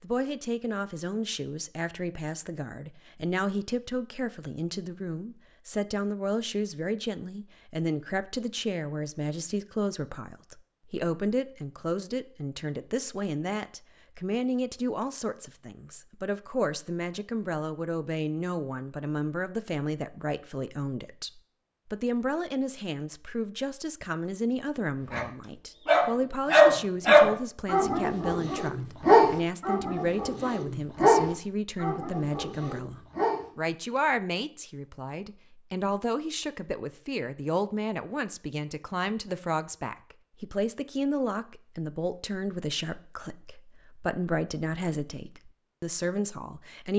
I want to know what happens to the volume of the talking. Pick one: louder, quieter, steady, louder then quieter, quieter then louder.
steady.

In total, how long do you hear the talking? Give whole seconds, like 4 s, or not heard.
47 s.